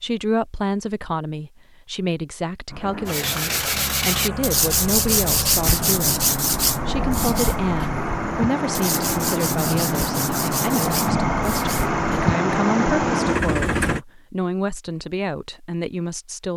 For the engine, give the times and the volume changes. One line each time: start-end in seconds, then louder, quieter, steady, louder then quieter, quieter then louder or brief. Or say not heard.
2.7-14.0 louder.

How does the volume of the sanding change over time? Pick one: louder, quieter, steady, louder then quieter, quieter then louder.
quieter.